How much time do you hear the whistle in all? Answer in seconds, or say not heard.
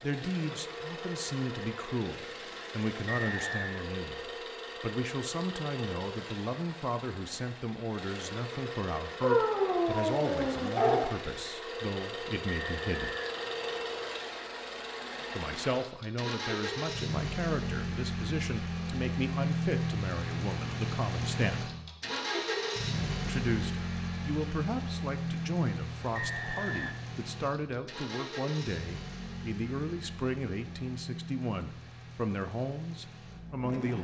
3 s.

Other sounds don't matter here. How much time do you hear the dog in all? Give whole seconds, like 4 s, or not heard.
2 s.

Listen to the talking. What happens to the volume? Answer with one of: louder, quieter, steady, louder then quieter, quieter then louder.
steady.